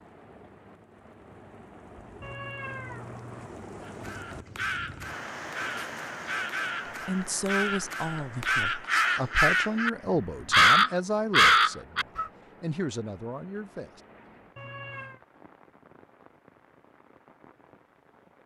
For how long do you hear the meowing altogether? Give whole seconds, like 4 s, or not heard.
2 s.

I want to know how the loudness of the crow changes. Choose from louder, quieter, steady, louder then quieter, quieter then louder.
louder.